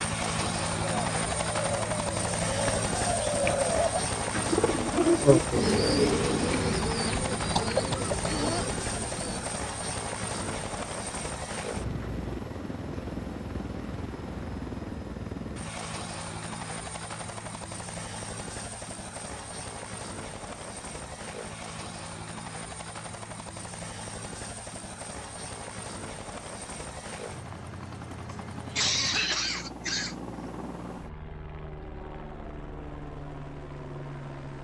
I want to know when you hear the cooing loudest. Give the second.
5 s.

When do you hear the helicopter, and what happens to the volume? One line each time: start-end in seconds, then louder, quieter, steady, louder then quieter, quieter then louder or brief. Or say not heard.
0.0-34.5 quieter.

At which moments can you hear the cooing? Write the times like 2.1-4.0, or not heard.
0.8-9.6.